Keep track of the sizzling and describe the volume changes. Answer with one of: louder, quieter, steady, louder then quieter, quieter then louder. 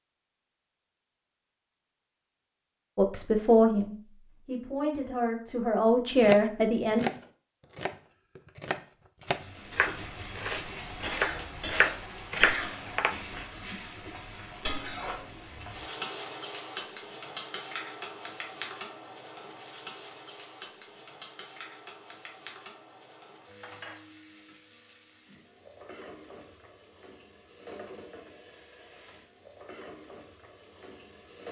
quieter.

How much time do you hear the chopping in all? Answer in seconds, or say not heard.
7 s.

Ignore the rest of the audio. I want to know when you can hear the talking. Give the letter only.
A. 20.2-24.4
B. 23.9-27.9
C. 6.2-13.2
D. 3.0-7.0
D.